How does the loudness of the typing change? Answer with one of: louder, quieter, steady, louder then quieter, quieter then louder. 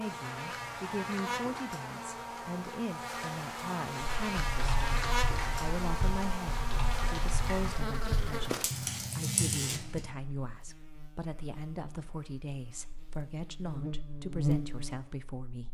louder.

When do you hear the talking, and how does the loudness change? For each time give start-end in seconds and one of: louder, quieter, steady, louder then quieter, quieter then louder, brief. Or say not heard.
0.0-15.6 steady.